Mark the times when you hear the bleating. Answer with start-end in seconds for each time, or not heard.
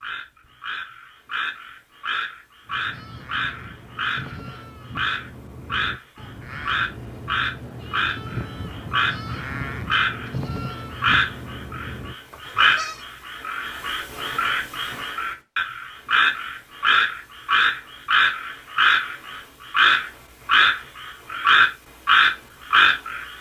2.6-13.1.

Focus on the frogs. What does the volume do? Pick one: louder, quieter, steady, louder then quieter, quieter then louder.
louder.